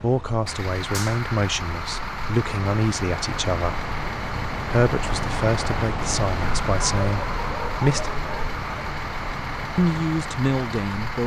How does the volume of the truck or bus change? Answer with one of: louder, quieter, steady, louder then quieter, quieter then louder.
steady.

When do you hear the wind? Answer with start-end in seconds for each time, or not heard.
0.0-11.2.